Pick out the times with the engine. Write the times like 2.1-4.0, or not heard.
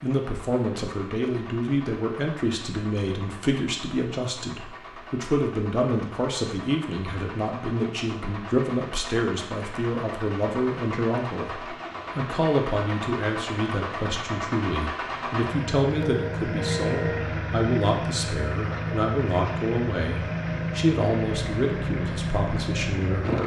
0.0-23.4.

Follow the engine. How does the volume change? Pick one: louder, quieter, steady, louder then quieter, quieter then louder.
louder.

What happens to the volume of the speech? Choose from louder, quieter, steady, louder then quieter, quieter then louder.
steady.